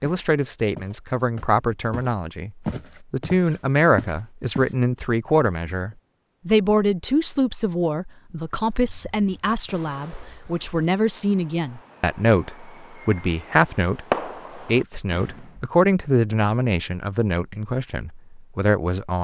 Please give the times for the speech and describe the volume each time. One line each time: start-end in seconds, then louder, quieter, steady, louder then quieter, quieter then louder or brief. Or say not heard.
0.0-19.1 steady.